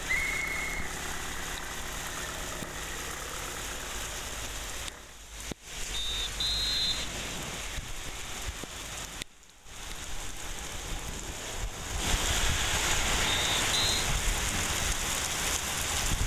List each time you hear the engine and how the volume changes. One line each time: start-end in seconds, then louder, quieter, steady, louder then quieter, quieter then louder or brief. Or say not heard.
0.0-5.2 quieter.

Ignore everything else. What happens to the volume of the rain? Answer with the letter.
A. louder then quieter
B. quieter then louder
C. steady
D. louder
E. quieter
D.